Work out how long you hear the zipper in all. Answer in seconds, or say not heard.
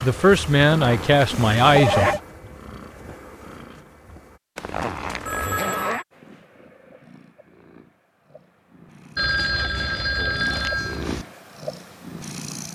5 s.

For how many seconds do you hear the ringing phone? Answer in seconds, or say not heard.
4 s.